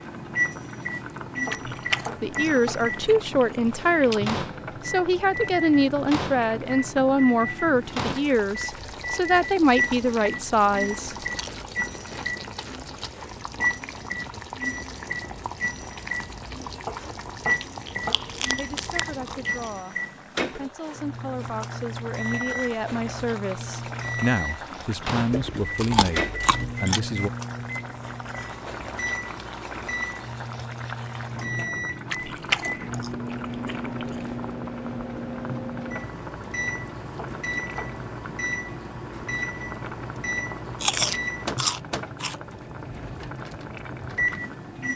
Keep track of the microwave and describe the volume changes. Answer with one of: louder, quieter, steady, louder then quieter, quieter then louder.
steady.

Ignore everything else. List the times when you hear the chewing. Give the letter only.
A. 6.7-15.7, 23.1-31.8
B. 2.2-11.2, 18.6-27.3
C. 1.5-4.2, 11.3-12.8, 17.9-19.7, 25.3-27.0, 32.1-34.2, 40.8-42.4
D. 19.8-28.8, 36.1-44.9
C.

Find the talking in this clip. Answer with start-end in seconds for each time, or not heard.
2.2-11.2, 18.6-27.3.